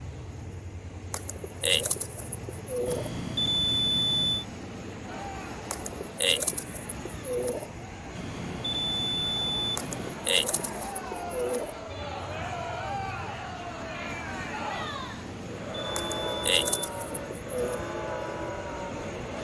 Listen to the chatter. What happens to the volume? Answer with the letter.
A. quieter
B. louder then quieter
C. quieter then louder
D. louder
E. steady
D.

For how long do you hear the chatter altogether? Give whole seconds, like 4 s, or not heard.
14 s.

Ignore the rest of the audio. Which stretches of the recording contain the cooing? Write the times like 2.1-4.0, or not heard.
1.1-3.1, 5.7-7.7, 9.8-11.8, 15.9-17.9.